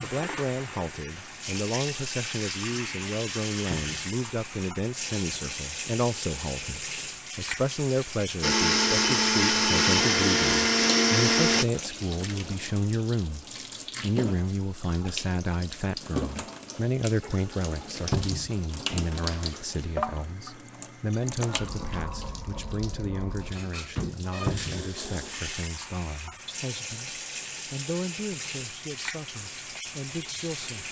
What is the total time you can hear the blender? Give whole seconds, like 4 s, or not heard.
3 s.